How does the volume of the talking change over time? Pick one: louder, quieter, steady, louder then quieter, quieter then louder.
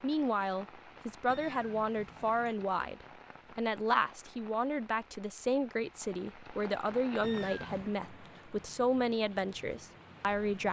steady.